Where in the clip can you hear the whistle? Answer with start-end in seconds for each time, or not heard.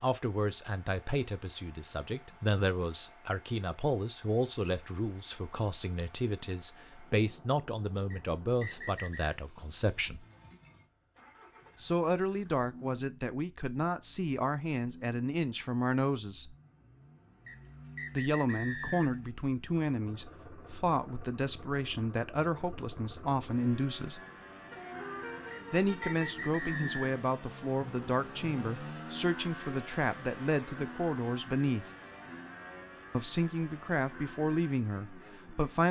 8.1-9.3, 17.4-19.2, 25.5-27.1.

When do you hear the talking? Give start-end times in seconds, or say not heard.
0.0-10.2, 11.8-16.6, 18.1-24.2, 25.7-31.9, 33.1-35.8.